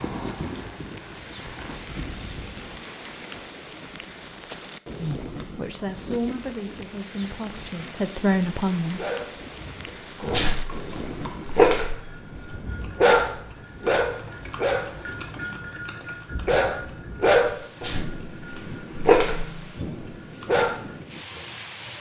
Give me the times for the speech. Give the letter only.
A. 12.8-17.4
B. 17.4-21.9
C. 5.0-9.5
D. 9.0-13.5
C.